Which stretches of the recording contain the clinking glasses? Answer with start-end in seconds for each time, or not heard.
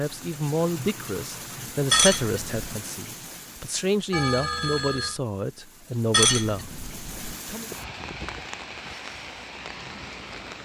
1.9-2.8, 6.1-7.3.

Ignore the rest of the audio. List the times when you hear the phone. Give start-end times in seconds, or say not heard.
4.1-5.2.